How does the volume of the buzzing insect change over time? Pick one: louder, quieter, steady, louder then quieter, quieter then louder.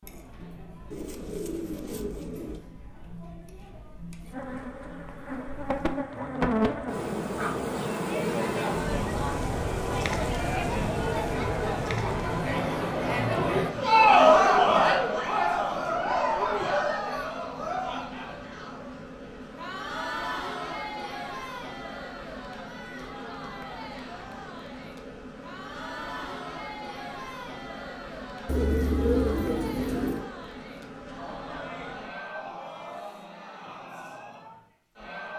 quieter.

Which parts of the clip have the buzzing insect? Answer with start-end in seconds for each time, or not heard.
4.3-32.2.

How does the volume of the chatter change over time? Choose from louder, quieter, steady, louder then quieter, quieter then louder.
louder then quieter.